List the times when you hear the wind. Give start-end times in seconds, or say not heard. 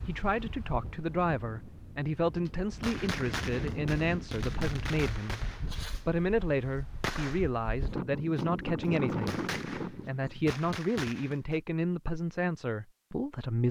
0.0-10.3.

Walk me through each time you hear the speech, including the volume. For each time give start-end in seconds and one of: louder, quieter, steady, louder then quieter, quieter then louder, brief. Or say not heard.
0.1-13.6 steady.